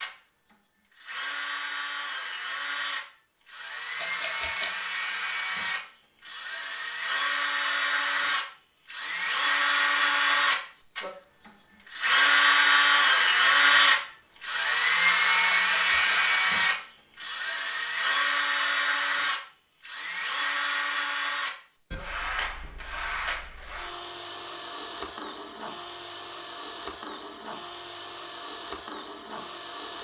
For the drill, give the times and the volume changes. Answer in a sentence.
The drill can be heard from 0.0 to 29.9 s, getting louder then quieter.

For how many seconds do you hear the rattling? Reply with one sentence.
The rattling can be heard for 2 seconds in total.